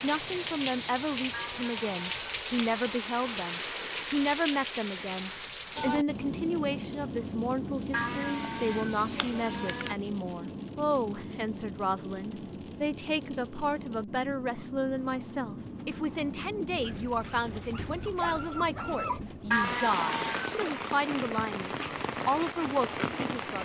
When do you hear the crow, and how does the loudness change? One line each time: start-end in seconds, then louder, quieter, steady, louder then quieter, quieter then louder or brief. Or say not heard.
not heard.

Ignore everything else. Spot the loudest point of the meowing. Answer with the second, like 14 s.
20 s.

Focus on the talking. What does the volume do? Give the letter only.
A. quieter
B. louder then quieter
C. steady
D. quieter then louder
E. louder
C.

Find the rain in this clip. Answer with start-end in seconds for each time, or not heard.
0.0-23.5.